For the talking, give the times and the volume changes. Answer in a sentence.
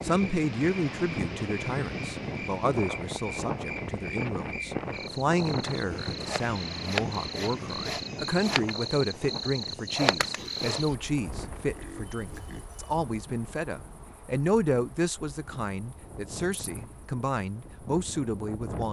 You can hear the talking from 0.0 to 18.8 s, at a steady volume.